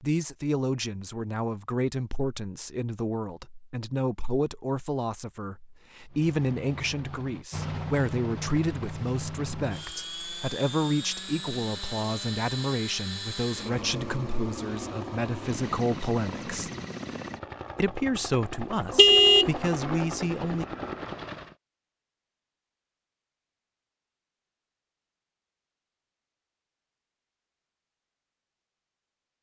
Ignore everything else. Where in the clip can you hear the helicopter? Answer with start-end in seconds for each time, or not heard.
6.1-21.6.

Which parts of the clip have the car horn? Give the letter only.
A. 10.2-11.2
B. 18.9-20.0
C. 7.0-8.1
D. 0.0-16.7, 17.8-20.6
B.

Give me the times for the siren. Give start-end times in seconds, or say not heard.
not heard.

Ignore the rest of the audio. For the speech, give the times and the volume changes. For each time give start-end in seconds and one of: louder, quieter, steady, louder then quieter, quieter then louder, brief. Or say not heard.
0.0-16.7 steady
17.8-20.6 brief.